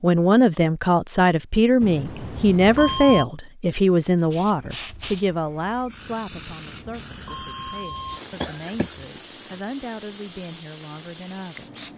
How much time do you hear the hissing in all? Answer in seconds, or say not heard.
8 s.